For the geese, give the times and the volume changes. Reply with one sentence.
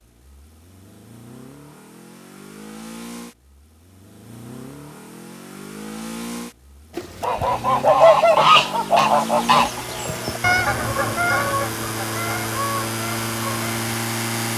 You can hear the geese from 7.0 to 13.8 s, getting quieter.